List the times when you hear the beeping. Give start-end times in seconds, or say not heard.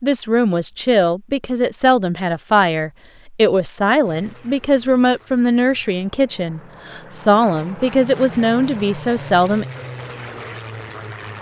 not heard.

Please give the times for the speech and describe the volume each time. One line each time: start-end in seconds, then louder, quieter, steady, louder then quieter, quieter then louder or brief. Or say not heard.
0.0-9.7 steady.